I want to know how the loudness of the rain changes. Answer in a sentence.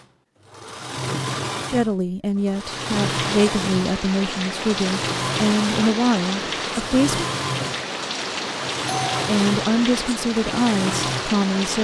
The volume of the rain stays about the same.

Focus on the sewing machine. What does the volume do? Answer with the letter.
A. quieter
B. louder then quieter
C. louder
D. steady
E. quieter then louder
D.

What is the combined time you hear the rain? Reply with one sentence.
You can hear the rain for 9 seconds altogether.